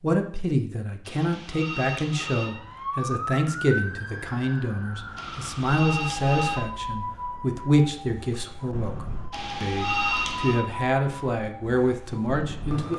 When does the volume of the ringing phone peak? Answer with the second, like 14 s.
10 s.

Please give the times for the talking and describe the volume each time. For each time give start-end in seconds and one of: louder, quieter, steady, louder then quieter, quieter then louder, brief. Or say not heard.
0.0-12.9 steady.